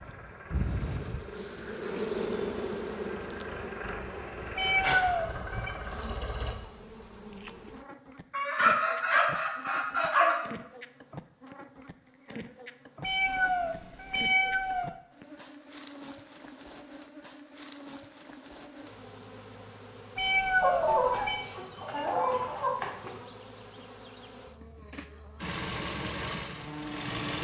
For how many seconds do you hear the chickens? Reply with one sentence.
The chickens can be heard for 5 seconds in total.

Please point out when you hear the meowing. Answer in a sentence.
The meowing can be heard from 4.5 to 5.7 s, from 13.0 to 14.9 s and from 20.1 to 21.4 s.